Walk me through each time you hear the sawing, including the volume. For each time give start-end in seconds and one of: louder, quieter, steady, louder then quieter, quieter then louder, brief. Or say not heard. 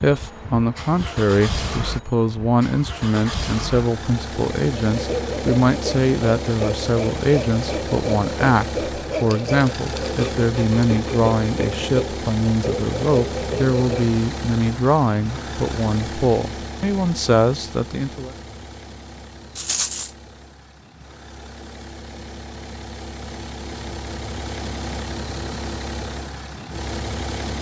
4.8-14.2 steady.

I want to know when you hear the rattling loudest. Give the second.
20 s.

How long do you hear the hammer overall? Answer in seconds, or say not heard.
not heard.